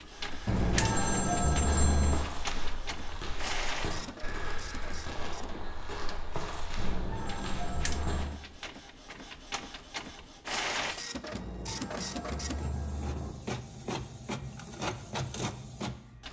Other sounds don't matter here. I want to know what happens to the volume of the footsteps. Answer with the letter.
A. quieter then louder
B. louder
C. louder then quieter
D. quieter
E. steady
E.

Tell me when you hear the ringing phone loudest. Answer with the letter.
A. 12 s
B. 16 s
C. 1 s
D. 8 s
C.